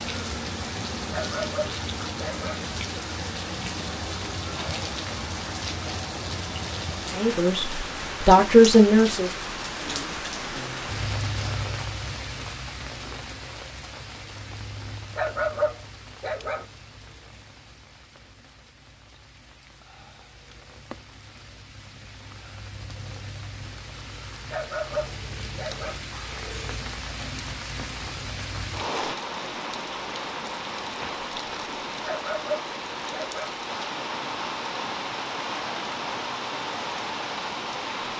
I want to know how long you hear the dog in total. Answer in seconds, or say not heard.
6 s.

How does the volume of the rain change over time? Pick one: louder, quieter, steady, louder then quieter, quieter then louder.
quieter then louder.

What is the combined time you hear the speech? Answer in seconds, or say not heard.
2 s.